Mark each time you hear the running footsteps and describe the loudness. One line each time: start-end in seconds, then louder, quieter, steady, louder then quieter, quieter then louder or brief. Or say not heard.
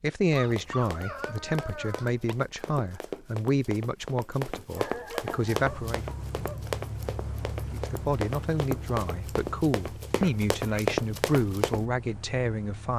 0.3-11.8 louder.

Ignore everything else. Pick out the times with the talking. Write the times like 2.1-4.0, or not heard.
0.0-6.0, 7.7-12.9.